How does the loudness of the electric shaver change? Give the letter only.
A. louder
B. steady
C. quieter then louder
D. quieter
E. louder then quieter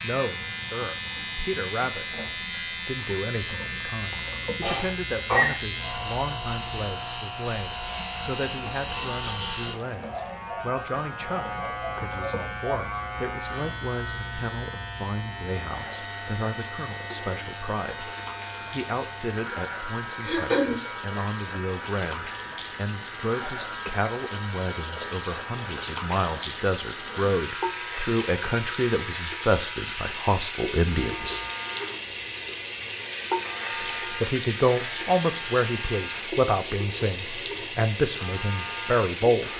D.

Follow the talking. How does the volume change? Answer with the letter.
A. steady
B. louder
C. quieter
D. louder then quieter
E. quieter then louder
B.